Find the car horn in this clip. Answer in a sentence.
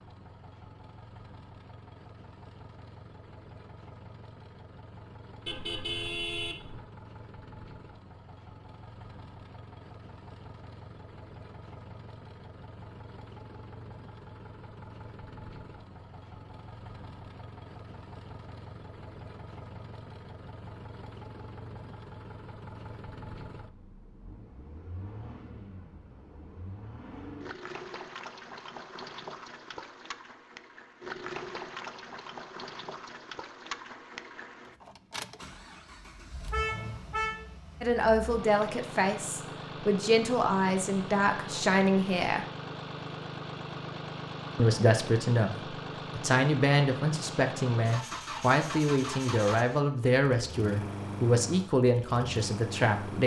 You can hear the car horn from 5.5 to 6.8 s and from 36.5 to 37.5 s.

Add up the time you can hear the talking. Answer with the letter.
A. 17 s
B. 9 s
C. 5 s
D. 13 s
D.